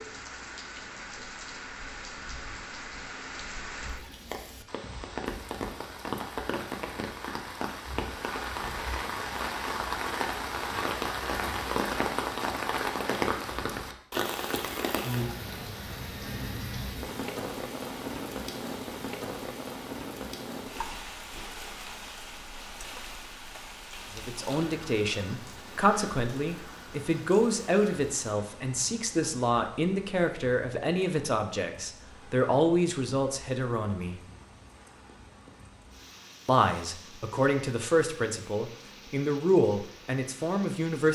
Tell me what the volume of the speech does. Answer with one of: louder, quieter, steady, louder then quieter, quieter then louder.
steady.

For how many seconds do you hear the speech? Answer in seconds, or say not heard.
15 s.